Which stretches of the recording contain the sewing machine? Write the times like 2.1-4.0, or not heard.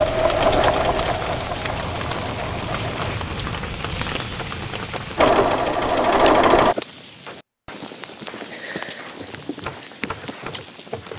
0.0-3.2, 5.2-6.8.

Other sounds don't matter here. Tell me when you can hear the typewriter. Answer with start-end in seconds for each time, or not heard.
4.0-5.2, 9.2-11.1.